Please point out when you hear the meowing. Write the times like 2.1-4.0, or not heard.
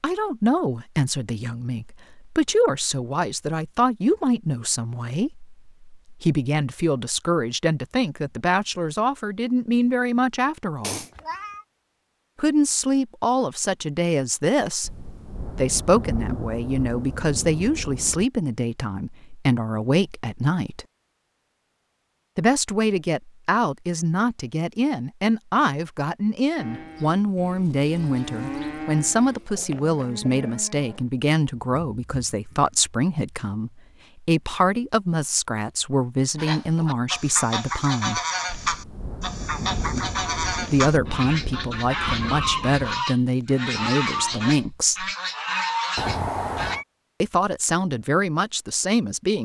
10.8-11.7, 29.4-30.6, 46.0-46.9.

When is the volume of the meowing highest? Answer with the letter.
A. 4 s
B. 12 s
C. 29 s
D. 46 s
D.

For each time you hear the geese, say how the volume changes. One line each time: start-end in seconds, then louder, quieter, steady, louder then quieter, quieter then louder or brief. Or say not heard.
36.4-46.8 steady.